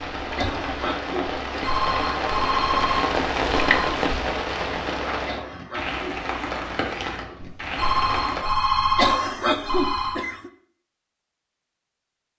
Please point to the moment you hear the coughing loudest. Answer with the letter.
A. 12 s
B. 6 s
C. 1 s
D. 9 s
D.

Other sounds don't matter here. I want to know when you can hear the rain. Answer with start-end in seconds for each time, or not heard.
0.0-8.4.